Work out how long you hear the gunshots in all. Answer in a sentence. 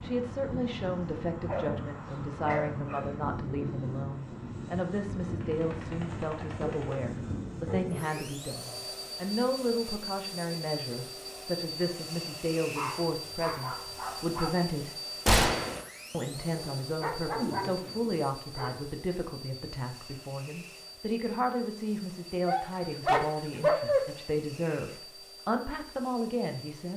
The gunshots can be heard for 2 seconds in total.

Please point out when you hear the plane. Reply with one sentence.
The plane can be heard from 0.0 to 26.9 s.